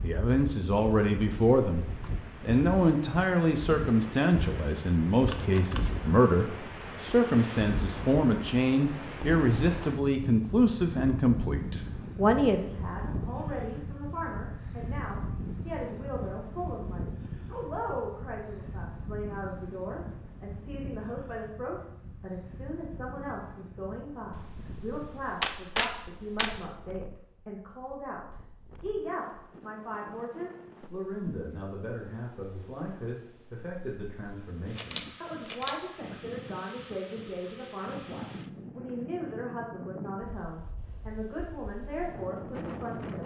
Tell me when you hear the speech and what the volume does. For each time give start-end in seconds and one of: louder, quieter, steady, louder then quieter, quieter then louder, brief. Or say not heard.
0.0-43.2 quieter.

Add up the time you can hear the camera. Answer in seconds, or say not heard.
4 s.